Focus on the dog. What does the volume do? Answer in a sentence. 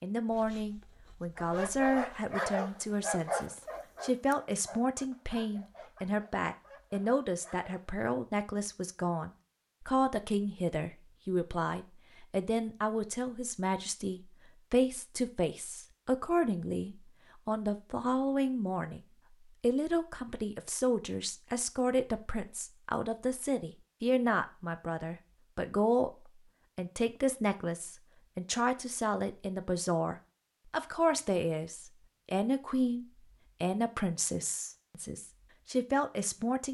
The volume of the dog goes down.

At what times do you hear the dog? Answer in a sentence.
The dog can be heard from 1.4 to 7.8 s.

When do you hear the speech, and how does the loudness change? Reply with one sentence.
You can hear the speech from 0.0 to 19.0 s, at a steady volume; and from 19.6 to 36.6 s, at a steady volume.